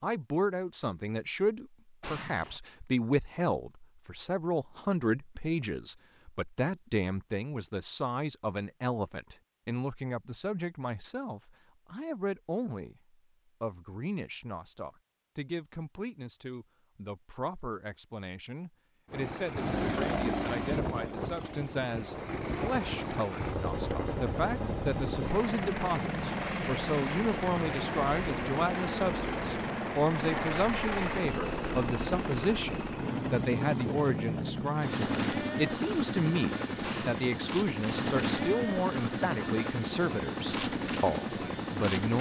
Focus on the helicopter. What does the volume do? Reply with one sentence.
The volume of the helicopter stays about the same.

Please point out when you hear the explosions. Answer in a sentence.
You can hear the explosions from 2.0 to 2.6 s and from 36.8 to 37.2 s.